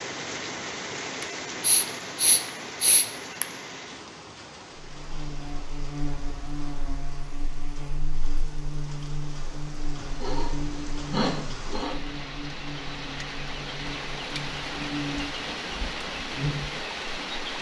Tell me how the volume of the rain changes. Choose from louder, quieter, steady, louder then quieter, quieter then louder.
quieter then louder.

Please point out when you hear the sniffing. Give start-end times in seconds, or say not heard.
1.2-3.5, 10.0-12.0.